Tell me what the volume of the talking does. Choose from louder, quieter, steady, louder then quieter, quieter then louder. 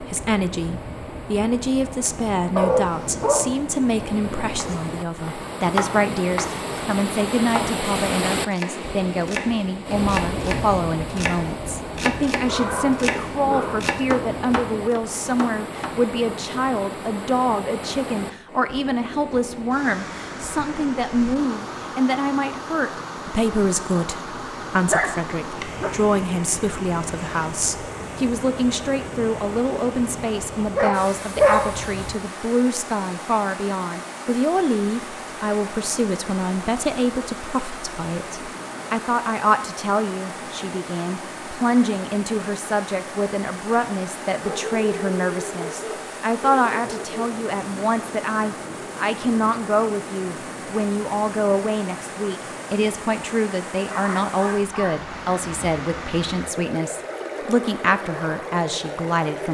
steady.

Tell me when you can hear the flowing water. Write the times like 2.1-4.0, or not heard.
0.0-59.4.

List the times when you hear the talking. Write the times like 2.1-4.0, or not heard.
0.0-59.4.